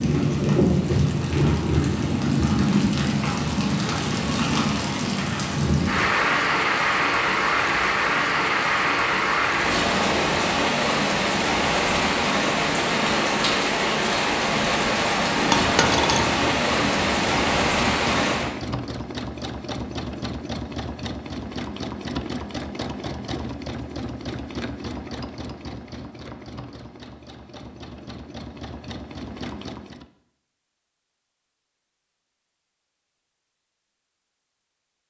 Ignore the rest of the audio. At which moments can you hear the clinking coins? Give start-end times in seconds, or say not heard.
15.5-16.2.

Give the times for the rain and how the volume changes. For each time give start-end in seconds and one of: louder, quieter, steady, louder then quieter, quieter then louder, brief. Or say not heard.
0.0-18.6 steady.